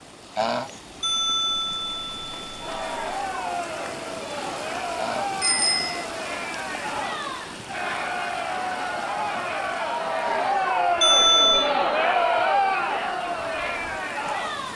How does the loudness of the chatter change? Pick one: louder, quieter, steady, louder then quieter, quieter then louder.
louder.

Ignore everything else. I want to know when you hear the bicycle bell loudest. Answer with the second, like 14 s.
11 s.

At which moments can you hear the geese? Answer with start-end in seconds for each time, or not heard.
0.3-0.8, 5.0-5.4, 10.2-10.6.